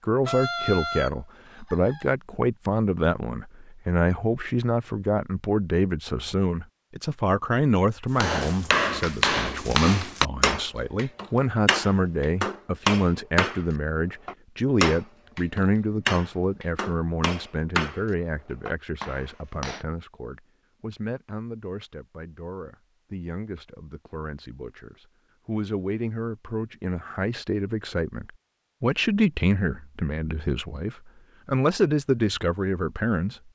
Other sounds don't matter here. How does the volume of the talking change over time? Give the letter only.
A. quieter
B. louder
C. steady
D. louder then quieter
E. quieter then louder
E.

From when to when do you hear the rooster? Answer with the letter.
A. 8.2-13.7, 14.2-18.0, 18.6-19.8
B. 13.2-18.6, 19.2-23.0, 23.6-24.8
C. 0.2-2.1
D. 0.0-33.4
C.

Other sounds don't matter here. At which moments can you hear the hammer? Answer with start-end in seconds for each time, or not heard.
8.2-13.7, 14.2-18.0, 18.6-19.8.